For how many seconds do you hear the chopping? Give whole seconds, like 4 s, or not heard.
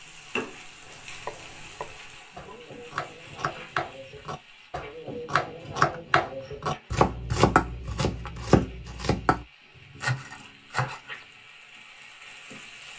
10 s.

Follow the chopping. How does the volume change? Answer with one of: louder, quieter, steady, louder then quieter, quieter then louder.
louder then quieter.